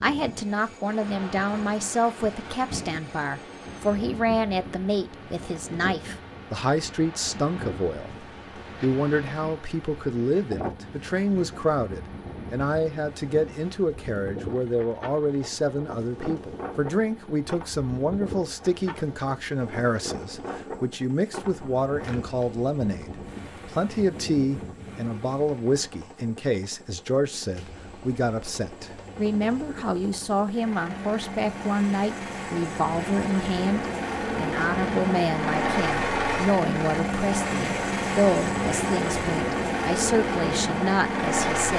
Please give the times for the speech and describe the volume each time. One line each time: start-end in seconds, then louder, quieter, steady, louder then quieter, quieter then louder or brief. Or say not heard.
0.0-41.7 steady.